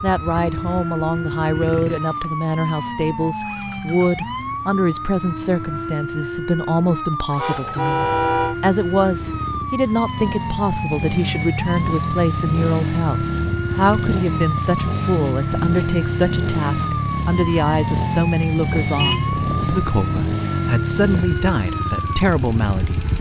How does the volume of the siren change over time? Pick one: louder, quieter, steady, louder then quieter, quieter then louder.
steady.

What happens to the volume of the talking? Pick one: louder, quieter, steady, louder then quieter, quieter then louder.
steady.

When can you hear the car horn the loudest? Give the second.
8 s.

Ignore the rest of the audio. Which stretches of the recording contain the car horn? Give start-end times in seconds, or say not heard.
7.3-8.6, 18.8-20.1.